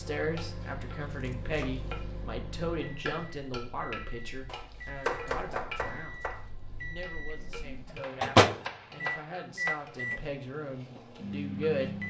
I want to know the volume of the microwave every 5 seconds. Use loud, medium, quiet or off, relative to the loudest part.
quiet, loud, medium.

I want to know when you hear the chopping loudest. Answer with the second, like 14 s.
5 s.